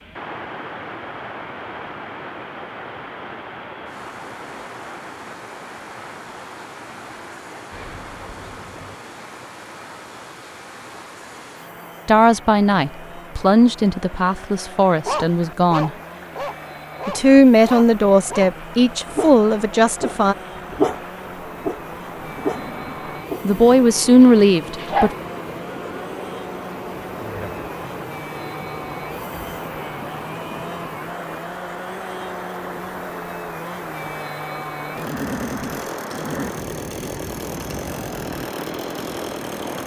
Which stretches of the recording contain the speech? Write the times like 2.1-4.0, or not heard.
12.1-15.9, 17.1-20.4, 23.4-25.1.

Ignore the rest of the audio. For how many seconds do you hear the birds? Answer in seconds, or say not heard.
not heard.